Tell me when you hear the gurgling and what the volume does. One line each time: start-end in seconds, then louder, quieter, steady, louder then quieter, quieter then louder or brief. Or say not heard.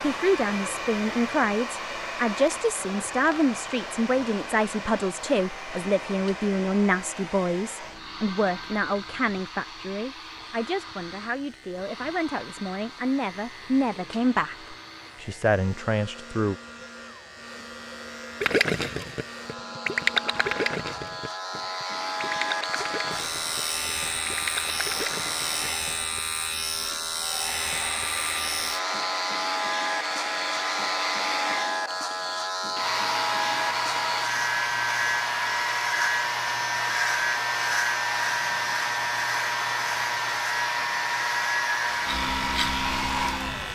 18.4-25.7 quieter then louder.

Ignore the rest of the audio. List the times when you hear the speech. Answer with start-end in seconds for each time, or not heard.
0.0-16.6.